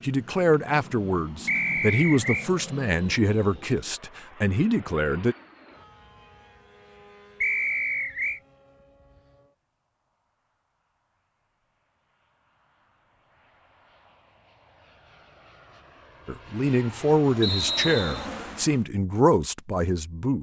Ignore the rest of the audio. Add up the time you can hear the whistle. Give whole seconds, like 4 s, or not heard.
3 s.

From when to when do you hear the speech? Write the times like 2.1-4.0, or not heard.
0.0-5.3, 16.2-20.3.